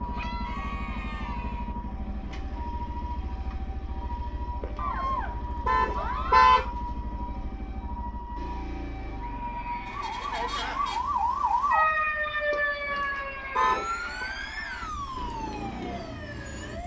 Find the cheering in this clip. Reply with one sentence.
You can hear the cheering from 0.0 to 1.8 s, from 4.8 to 6.7 s, from 8.9 to 11.0 s and from 12.8 to 14.9 s.